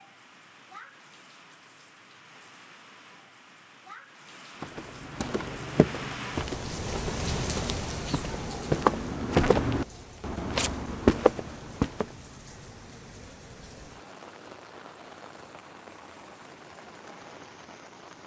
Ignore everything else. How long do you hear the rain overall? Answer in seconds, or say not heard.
18 s.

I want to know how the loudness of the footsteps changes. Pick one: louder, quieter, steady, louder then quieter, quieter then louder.
louder.